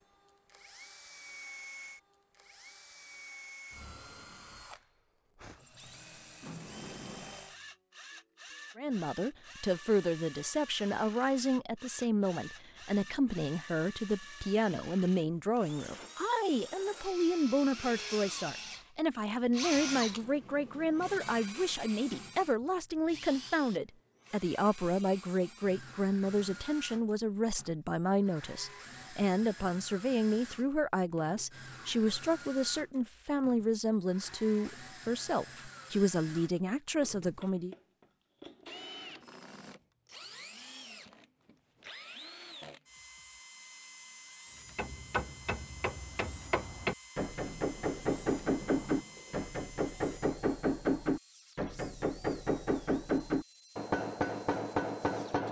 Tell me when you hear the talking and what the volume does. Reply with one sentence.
You can hear the talking from 8.8 to 37.8 s, at a steady volume.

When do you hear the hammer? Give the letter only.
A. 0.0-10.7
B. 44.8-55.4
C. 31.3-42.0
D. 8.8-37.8
B.